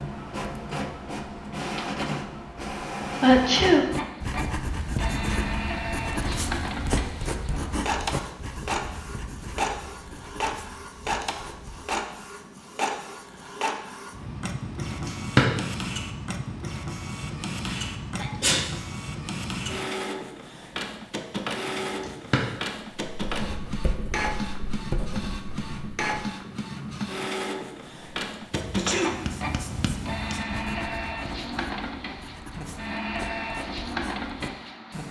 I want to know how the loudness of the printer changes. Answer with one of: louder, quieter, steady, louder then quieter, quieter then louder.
steady.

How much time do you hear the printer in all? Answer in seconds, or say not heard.
35 s.